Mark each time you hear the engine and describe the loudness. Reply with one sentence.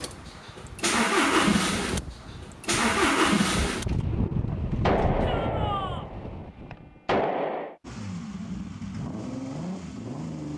You can hear the engine from 0.0 to 5.3 s, getting quieter; and briefly from 7.8 to 10.5 s.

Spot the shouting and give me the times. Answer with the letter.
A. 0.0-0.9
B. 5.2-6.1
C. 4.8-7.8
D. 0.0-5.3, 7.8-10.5
B.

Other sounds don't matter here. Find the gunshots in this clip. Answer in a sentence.
The gunshots can be heard from 4.8 to 7.8 s.